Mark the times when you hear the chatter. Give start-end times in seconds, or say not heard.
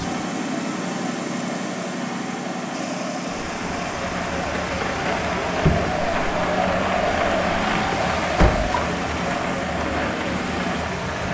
0.0-11.2.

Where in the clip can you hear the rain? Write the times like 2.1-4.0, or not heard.
3.4-11.2.